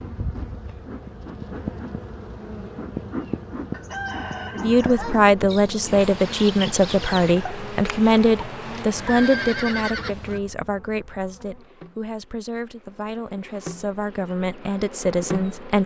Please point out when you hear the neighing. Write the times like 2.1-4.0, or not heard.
8.9-10.4.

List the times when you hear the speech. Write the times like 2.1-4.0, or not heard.
4.5-15.8.